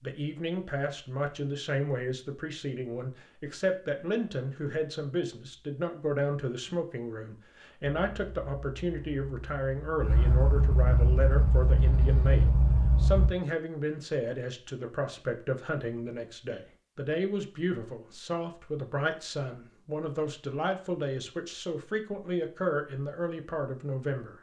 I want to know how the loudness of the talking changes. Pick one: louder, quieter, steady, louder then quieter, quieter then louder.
steady.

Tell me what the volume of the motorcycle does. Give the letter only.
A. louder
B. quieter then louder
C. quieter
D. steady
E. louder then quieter
A.